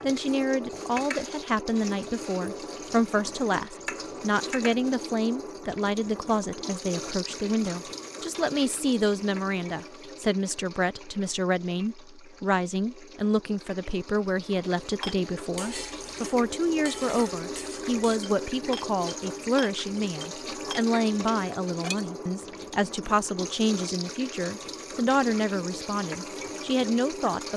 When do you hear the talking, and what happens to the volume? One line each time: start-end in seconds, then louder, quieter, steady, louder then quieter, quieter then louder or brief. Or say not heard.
0.0-27.5 steady.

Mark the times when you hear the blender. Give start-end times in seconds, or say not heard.
not heard.